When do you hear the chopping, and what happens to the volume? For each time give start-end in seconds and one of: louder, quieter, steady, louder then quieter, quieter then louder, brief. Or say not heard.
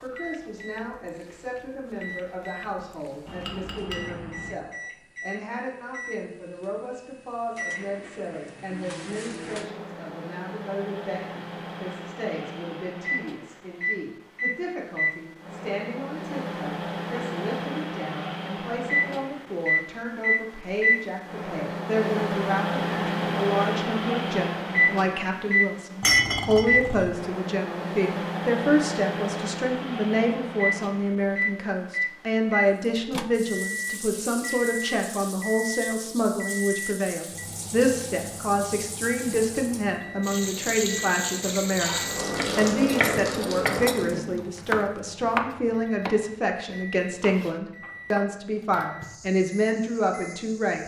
42.4-48.3 quieter.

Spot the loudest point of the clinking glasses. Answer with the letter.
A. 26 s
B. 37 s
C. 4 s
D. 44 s
A.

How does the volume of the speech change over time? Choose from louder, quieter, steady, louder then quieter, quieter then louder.
louder.